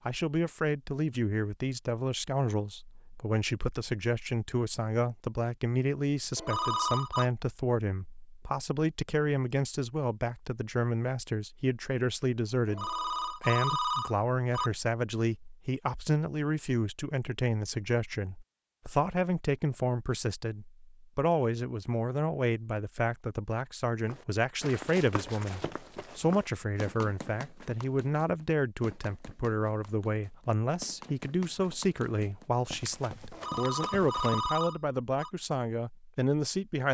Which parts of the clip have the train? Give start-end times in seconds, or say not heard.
not heard.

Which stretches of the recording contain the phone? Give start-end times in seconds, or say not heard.
6.3-7.3, 12.7-14.7, 33.3-35.3.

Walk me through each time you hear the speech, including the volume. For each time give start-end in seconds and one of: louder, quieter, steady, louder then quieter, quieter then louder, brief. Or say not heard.
0.1-36.8 steady.